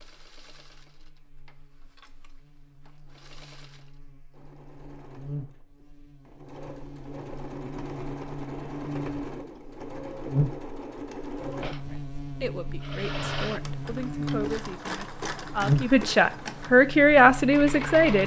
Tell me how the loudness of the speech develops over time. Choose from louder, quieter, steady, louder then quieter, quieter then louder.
louder.